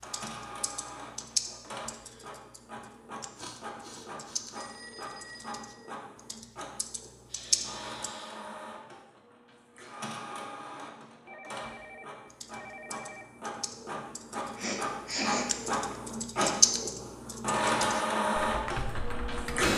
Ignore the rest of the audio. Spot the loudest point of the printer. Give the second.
18 s.